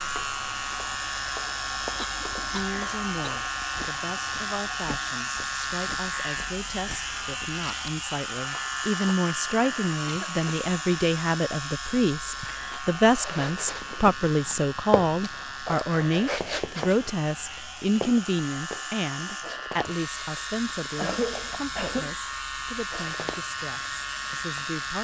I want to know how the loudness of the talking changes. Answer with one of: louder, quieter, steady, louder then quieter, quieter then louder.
louder then quieter.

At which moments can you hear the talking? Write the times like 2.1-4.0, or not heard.
2.5-24.9.